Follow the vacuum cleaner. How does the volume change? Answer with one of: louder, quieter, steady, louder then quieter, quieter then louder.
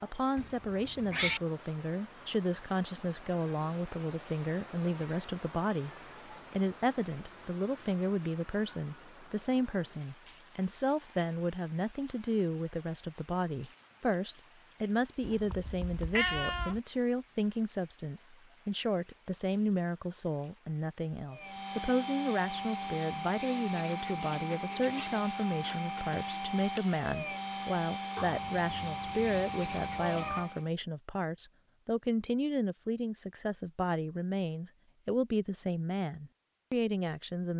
steady.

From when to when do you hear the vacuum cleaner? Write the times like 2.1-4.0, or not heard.
21.2-30.7.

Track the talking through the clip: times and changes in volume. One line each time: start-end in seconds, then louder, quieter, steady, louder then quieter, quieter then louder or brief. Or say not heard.
0.0-37.5 steady.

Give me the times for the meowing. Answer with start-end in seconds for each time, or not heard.
0.3-1.4, 15.2-16.8, 28.1-30.5.